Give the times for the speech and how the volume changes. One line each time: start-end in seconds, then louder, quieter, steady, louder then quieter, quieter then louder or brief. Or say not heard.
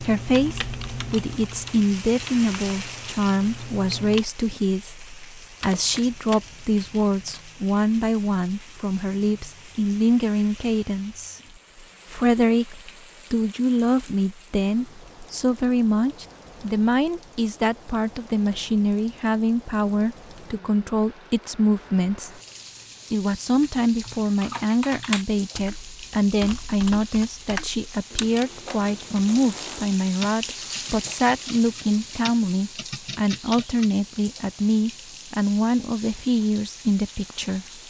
0.0-11.4 steady
12.1-22.3 steady
23.1-37.6 steady.